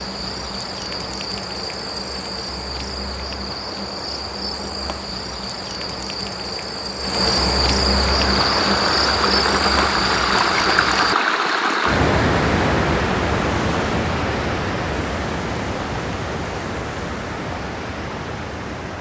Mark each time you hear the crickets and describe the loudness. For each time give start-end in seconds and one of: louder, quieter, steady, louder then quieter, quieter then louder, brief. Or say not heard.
0.0-11.2 louder.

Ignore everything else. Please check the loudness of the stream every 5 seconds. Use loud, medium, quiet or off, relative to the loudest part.
off, loud, loud, medium.